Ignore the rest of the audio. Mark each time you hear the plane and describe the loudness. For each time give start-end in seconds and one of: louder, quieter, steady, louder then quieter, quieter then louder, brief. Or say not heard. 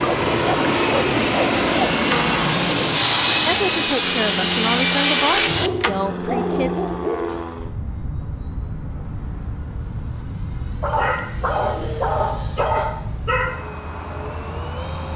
0.0-15.1 quieter.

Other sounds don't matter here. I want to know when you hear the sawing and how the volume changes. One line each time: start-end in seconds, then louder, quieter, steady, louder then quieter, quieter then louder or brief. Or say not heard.
0.0-5.9 louder.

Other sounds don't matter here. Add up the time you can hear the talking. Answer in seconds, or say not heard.
3 s.